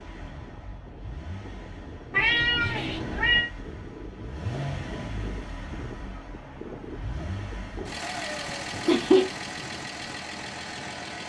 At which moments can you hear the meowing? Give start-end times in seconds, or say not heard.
2.1-3.5, 8.0-9.3.